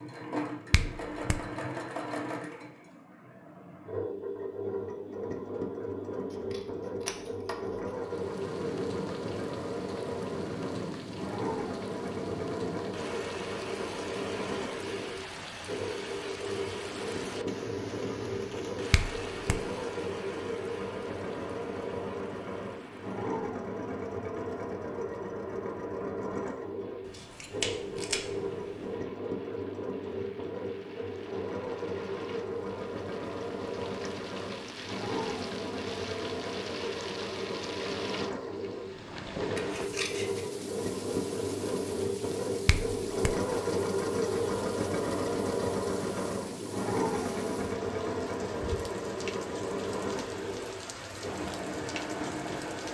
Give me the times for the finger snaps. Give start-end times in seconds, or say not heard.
0.7-1.4, 18.9-19.6, 42.6-43.4.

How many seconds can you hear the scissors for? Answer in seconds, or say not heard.
4 s.